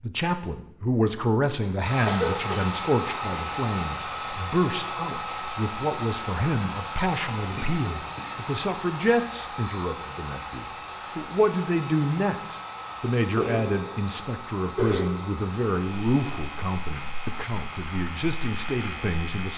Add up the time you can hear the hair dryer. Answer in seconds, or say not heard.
18 s.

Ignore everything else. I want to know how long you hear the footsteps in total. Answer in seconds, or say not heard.
not heard.